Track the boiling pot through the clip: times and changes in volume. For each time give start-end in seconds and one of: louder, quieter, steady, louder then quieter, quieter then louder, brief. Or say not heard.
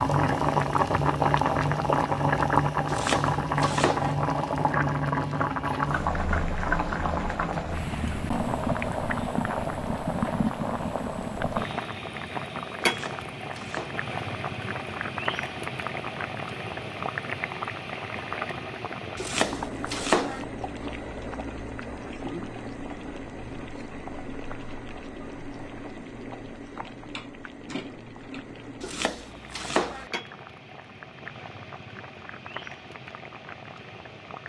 0.0-34.4 quieter.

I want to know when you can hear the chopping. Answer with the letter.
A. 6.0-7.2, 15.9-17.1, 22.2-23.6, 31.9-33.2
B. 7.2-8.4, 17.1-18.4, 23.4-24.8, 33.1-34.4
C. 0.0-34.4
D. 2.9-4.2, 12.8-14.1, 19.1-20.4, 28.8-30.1
D.